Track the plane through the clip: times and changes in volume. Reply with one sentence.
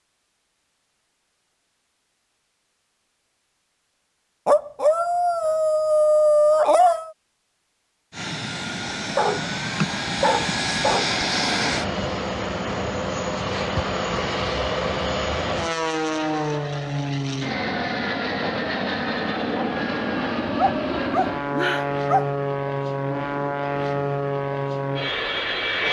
The plane can be heard from 8.1 to 25.8 s, at a steady volume.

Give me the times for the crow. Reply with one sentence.
You can't hear the crow here.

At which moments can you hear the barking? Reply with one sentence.
You can hear the barking from 4.5 to 7.1 s, from 9.2 to 11.1 s and from 20.6 to 22.2 s.